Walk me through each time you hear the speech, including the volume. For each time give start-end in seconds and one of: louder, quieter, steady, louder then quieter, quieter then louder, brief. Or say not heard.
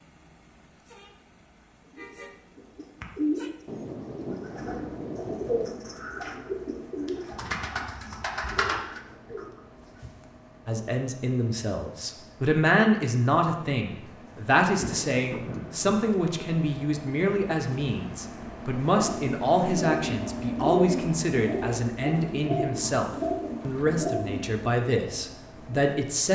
10.7-26.2 steady.